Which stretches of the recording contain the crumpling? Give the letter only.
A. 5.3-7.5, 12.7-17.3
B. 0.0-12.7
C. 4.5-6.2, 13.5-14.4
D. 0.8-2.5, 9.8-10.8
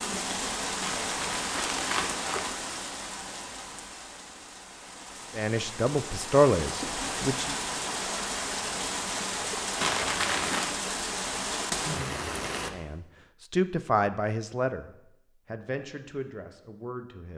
D.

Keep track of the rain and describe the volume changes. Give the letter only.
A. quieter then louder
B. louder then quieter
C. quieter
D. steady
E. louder
A.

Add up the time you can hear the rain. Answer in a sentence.
The rain can be heard for 13 seconds in total.